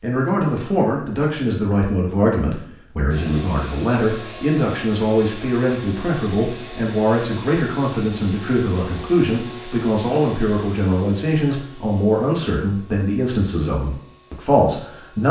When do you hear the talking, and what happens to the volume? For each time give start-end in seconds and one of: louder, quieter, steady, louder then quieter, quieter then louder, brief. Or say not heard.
0.0-15.2 steady.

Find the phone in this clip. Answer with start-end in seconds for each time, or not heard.
not heard.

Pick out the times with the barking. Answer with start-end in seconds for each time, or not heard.
not heard.